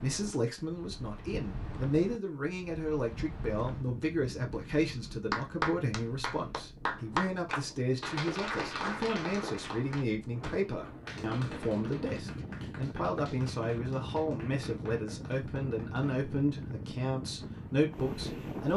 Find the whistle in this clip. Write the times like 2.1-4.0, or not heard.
not heard.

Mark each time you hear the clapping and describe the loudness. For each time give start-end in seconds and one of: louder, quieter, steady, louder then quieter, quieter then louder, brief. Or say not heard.
5.3-16.2 quieter.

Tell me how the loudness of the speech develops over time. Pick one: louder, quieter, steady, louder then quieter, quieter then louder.
steady.